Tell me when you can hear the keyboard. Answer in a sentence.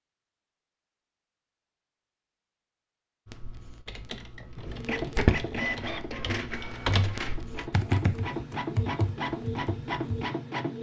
You can hear the keyboard from 3.2 to 10.3 s.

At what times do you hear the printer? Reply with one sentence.
You can hear the printer from 4.5 to 10.7 s.